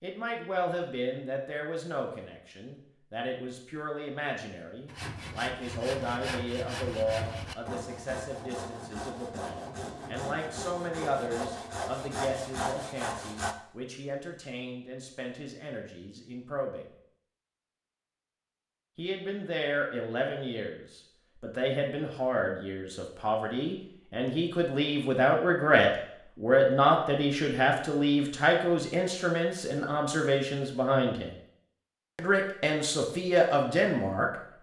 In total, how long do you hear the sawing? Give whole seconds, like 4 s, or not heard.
9 s.